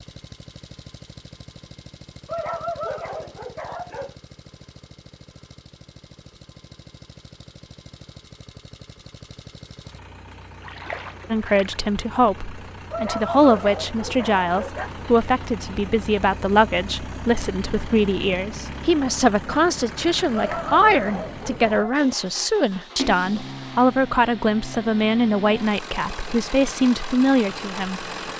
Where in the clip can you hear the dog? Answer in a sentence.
You can hear the dog from 2.2 to 4.2 s, from 12.9 to 14.9 s and from 20.3 to 22.1 s.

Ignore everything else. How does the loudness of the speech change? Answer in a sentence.
The loudness of the speech stays about the same.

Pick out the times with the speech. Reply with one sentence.
The speech can be heard from 11.3 to 28.1 s.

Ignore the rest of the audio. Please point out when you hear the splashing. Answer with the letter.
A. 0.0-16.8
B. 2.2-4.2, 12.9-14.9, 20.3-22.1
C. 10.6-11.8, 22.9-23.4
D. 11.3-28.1
C.